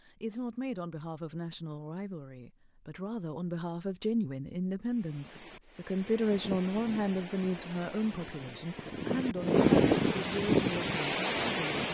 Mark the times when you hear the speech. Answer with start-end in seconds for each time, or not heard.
0.0-11.8.